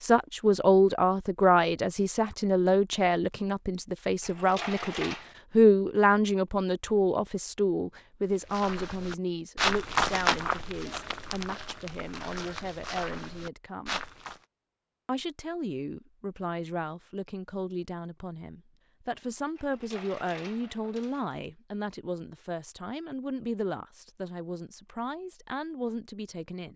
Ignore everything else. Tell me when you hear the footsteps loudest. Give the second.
10 s.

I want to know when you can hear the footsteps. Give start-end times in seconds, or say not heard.
8.3-14.4.